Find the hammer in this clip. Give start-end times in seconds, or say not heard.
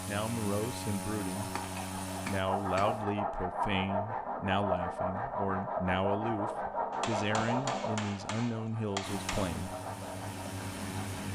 1.6-3.0, 6.9-9.6.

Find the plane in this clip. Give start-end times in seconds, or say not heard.
0.0-3.0, 9.0-11.3.